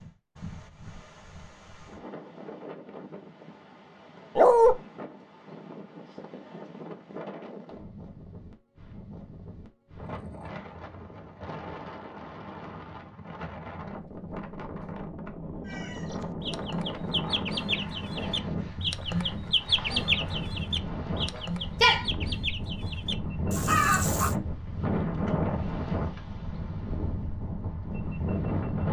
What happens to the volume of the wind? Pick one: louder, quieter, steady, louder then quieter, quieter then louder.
louder.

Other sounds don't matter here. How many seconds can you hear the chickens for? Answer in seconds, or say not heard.
9 s.